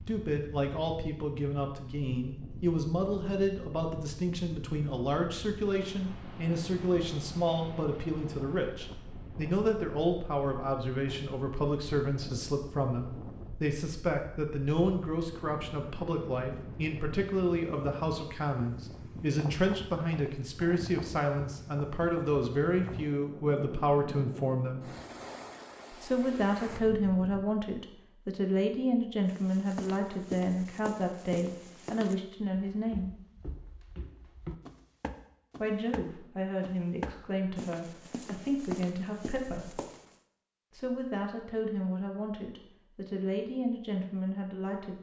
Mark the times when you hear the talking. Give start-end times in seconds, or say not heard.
0.0-24.9, 25.9-33.1, 35.5-39.8, 40.7-44.9.